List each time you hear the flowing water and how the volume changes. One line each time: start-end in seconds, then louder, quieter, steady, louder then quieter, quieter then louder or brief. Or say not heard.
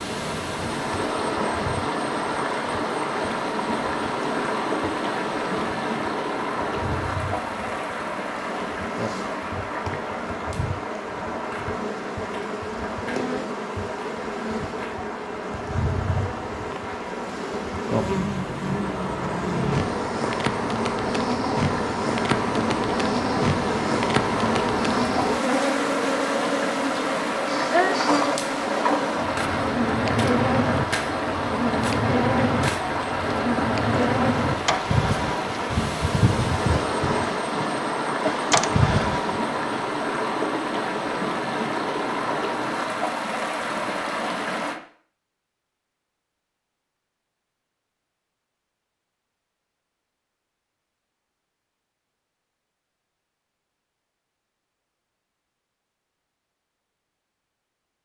0.0-44.8 quieter then louder.